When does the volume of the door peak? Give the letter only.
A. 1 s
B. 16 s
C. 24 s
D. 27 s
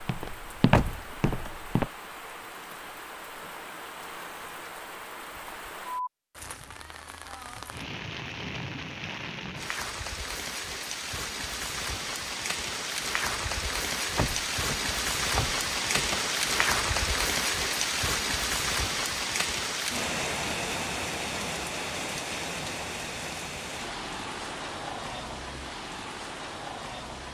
A.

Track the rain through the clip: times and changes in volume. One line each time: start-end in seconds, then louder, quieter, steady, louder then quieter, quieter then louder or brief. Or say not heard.
0.0-27.2 louder then quieter.